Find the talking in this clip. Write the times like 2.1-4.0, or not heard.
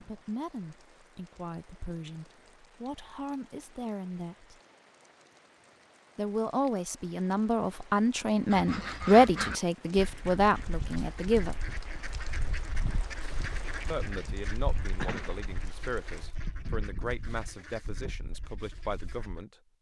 0.0-4.5, 6.2-11.7, 13.9-19.6.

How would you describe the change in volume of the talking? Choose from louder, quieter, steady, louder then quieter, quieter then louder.
louder then quieter.